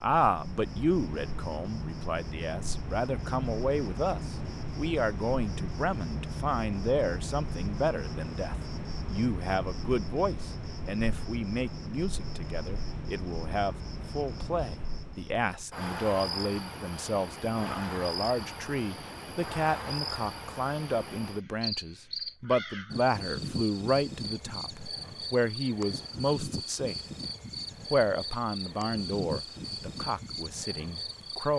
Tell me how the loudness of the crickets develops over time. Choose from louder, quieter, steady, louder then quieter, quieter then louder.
steady.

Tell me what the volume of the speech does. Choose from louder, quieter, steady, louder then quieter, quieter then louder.
steady.